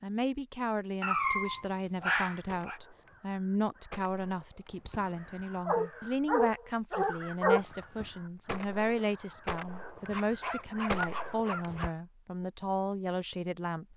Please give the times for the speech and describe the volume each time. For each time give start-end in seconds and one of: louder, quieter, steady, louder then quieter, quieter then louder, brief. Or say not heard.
0.0-13.9 steady.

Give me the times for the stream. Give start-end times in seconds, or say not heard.
not heard.